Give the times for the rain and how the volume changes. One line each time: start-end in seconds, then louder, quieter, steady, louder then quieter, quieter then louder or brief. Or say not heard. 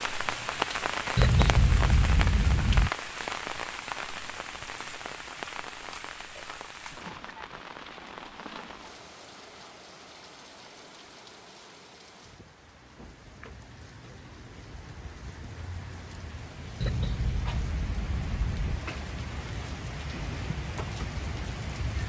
0.0-22.0 quieter then louder.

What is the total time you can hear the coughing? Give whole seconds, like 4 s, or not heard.
4 s.